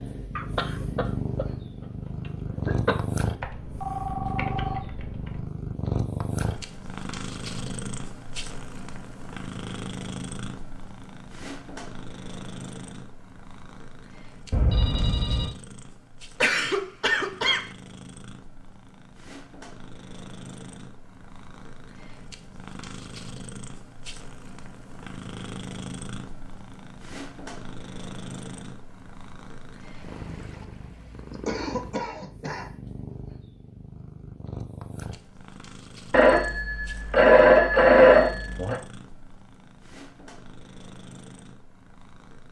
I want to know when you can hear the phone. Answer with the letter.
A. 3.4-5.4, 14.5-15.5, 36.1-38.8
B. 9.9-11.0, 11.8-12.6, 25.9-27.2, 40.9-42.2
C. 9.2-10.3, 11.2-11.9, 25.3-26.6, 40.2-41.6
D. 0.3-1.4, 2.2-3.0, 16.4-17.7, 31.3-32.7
A.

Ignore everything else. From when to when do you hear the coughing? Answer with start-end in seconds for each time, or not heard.
0.3-1.4, 2.2-3.0, 16.4-17.7, 31.3-32.7.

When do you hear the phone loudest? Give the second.
38 s.